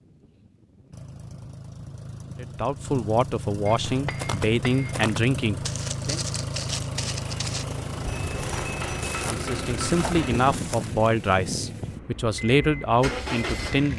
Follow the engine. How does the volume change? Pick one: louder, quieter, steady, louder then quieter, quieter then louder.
louder.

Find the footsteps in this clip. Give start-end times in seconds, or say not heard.
3.8-10.9.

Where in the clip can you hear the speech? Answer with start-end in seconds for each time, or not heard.
2.4-6.2, 9.2-13.9.